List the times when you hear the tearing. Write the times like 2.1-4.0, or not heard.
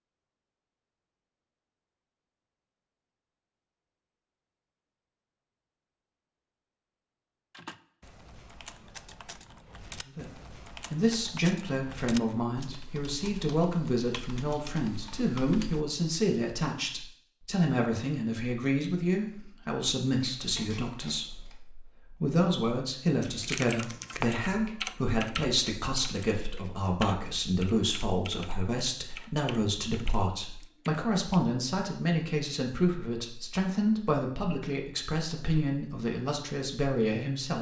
23.2-24.3.